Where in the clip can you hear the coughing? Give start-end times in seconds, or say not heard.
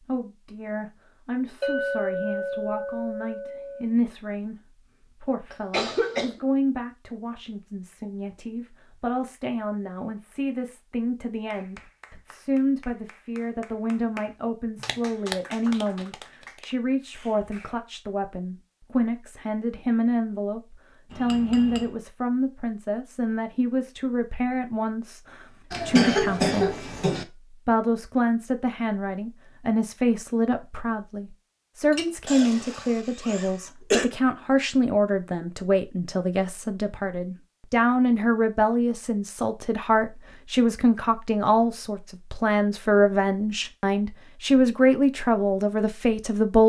5.5-6.4, 25.7-27.2, 32.2-34.0.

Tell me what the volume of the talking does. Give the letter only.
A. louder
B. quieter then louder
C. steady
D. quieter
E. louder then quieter
A.